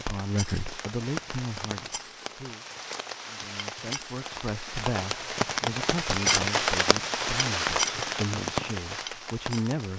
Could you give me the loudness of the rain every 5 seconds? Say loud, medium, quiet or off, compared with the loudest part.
medium, loud.